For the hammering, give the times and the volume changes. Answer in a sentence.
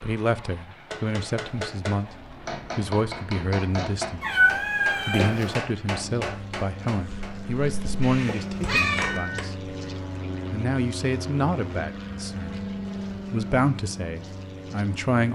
The hammering can be heard from 0.9 to 9.4 s, getting quieter.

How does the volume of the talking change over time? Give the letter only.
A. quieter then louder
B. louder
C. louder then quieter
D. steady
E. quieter
D.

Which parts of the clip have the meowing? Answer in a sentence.
The meowing can be heard from 4.2 to 5.6 s and from 8.0 to 9.2 s.